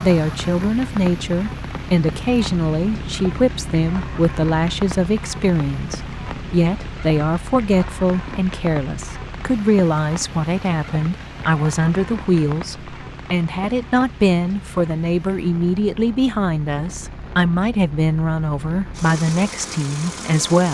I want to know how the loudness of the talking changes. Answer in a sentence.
The volume of the talking stays about the same.